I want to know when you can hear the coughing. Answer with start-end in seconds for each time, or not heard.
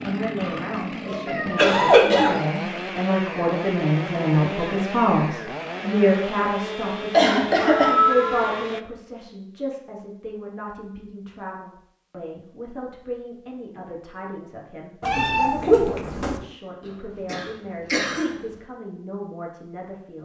0.3-2.4, 7.1-8.0, 16.9-18.4.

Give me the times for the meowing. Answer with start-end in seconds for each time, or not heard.
1.2-2.5, 7.7-8.7, 15.0-16.4.